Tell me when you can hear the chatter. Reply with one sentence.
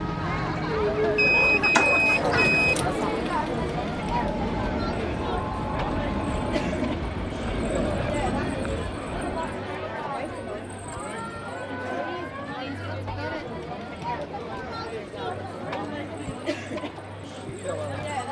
The chatter can be heard from 0.0 to 18.2 s.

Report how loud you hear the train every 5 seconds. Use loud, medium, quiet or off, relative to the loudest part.
loud, loud, off, off.